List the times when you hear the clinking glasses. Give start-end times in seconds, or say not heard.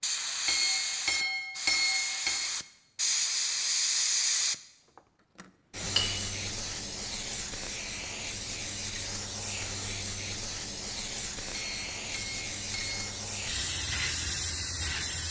0.5-2.4, 11.5-13.1.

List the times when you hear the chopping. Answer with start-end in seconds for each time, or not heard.
not heard.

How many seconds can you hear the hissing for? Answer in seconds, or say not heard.
15 s.